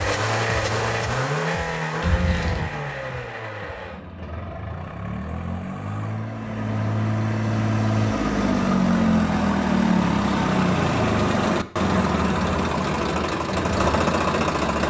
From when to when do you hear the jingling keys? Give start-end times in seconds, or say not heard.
2.0-2.6.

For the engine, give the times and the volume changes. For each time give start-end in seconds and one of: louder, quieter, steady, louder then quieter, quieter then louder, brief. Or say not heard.
0.0-14.8 quieter then louder.